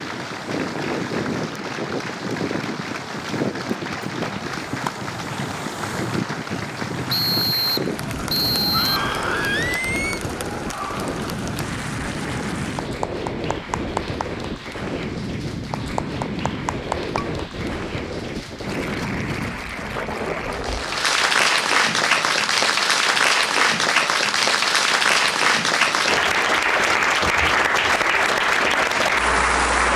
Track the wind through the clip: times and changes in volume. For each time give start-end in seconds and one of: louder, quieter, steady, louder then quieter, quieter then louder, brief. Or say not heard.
0.0-29.9 quieter.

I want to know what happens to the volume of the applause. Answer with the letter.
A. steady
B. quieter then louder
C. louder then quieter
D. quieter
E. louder
E.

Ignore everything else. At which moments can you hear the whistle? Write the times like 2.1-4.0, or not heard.
7.1-9.1.